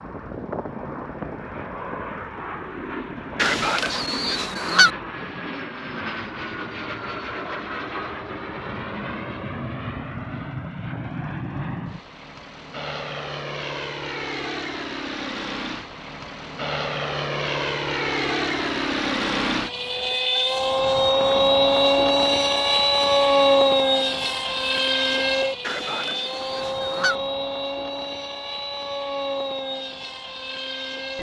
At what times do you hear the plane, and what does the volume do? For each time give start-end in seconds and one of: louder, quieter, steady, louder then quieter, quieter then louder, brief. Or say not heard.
0.0-31.1 louder then quieter.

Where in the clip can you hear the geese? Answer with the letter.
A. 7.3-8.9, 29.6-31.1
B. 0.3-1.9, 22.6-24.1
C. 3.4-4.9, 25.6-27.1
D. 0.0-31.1
C.